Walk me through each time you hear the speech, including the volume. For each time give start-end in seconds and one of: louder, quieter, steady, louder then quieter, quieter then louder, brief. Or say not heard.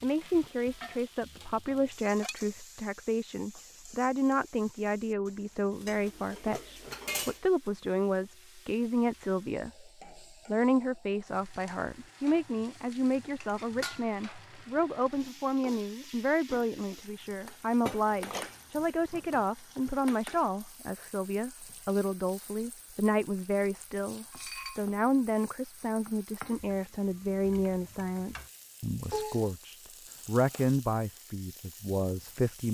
0.0-32.6 steady.